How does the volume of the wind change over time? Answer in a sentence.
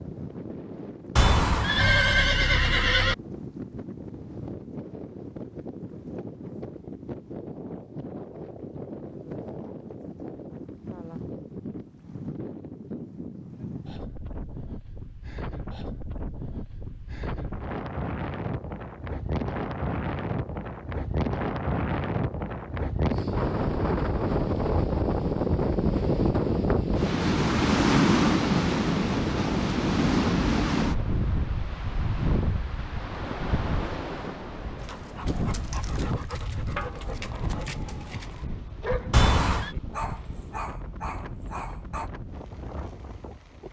The volume of the wind goes up, then down.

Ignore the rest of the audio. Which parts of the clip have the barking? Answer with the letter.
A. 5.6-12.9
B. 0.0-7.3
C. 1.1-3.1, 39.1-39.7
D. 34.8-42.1
D.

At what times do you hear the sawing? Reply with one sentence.
You can't hear the sawing here.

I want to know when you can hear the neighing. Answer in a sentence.
You can hear the neighing from 1.1 to 3.1 s and from 39.1 to 39.7 s.